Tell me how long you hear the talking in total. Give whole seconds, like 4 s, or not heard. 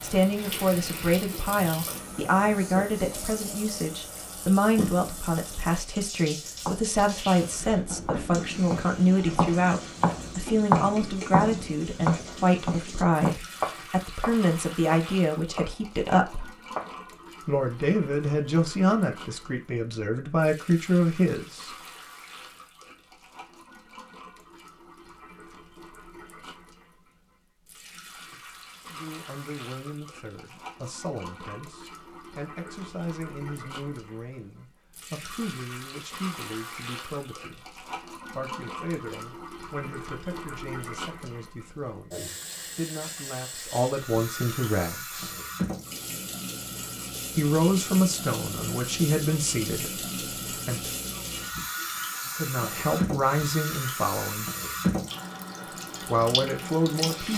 44 s.